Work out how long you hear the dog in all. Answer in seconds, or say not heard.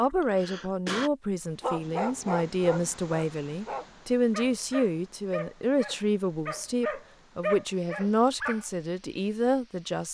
7 s.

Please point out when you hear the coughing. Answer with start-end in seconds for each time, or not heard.
0.1-1.1.